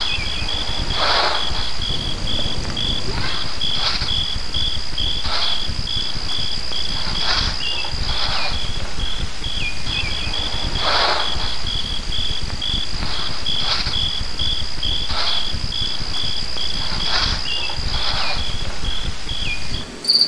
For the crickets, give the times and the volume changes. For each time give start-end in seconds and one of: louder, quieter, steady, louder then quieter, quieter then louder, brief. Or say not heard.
0.0-20.2 steady.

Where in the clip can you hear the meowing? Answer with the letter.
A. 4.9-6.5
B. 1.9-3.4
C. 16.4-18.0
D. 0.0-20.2
B.